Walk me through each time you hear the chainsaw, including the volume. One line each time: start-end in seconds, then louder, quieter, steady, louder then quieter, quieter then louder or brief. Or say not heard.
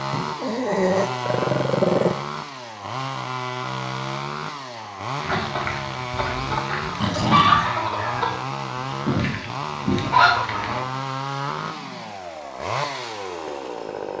0.0-14.1 steady.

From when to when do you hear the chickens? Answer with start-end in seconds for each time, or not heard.
5.2-10.8.